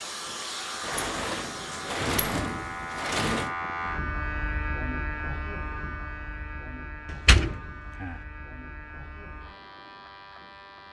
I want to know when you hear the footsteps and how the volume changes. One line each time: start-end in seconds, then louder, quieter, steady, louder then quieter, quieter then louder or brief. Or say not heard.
not heard.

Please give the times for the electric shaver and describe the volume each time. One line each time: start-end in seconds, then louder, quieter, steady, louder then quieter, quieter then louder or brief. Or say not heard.
0.0-10.8 louder then quieter.